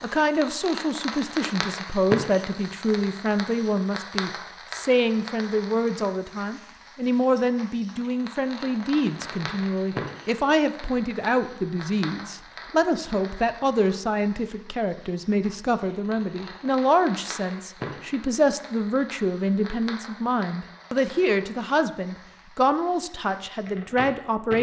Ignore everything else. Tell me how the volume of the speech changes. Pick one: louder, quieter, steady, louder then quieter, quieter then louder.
steady.